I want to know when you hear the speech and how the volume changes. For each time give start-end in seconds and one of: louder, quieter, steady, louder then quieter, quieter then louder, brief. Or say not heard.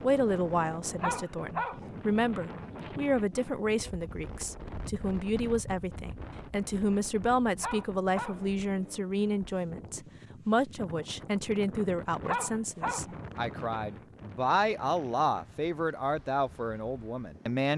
0.0-17.7 steady.